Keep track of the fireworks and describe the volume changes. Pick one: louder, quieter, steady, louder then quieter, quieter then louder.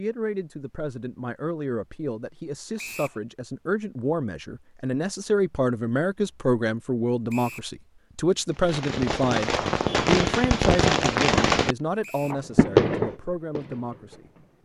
louder then quieter.